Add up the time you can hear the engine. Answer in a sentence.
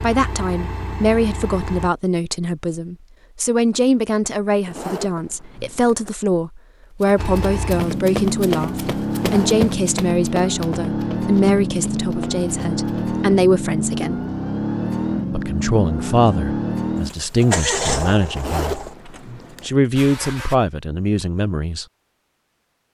The engine can be heard for 15 seconds in total.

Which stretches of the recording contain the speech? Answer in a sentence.
The speech can be heard from 0.0 to 14.2 s, from 15.3 to 18.8 s and from 19.6 to 21.9 s.